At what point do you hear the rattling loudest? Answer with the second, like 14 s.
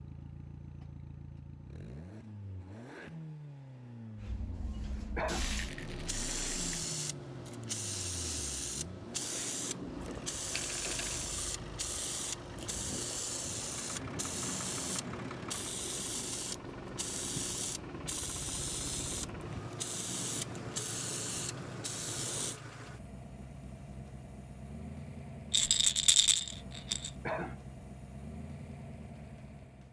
26 s.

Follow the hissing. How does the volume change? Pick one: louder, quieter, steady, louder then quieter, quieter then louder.
steady.